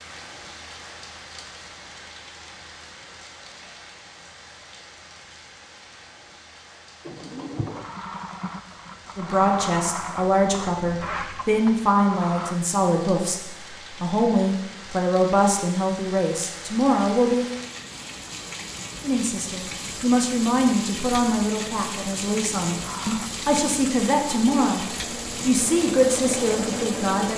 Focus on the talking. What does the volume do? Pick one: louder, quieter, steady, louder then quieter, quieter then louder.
steady.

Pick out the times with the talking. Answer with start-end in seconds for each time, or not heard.
9.2-17.4, 19.0-27.3.